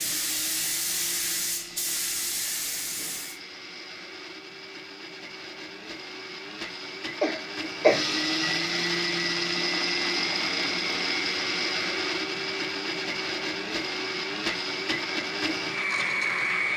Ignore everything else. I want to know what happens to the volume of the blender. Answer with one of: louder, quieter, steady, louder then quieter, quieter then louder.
louder.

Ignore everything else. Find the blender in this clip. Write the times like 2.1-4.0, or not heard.
0.0-16.7.